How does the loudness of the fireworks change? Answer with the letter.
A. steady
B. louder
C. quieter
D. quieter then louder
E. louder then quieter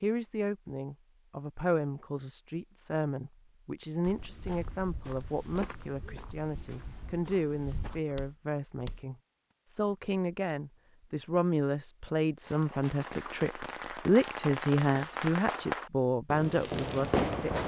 B.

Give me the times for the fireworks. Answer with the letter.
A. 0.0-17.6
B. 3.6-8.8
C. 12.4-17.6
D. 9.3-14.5
C.